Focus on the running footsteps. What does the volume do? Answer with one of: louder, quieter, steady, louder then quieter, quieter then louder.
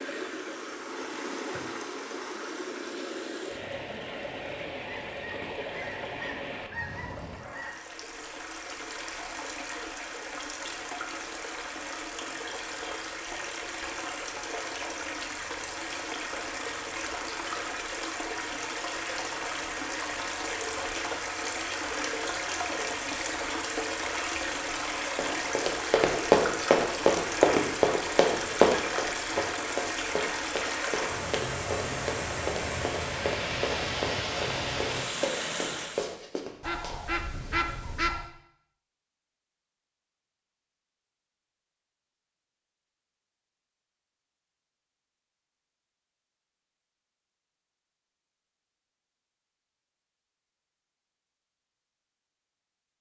quieter.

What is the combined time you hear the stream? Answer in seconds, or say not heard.
36 s.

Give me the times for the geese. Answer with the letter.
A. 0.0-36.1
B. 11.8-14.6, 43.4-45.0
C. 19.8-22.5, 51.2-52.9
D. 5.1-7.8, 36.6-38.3
D.